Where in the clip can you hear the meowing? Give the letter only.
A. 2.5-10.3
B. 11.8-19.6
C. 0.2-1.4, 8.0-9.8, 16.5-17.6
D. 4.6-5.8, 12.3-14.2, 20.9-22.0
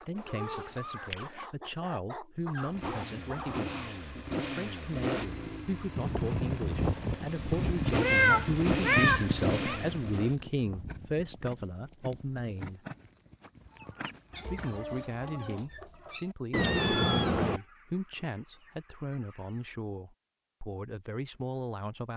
C.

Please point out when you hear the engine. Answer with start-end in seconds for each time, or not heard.
2.5-10.3.